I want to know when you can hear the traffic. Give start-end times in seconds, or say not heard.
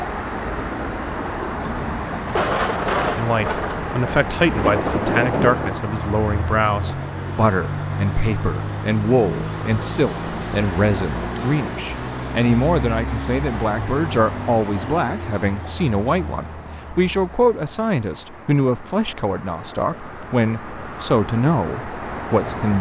0.0-22.7.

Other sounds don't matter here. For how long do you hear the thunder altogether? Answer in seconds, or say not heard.
4 s.